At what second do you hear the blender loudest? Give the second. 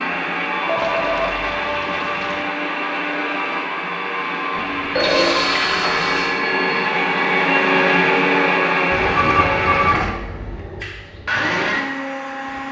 8 s.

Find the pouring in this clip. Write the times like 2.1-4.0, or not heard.
0.8-2.5, 4.5-6.5, 8.9-10.2.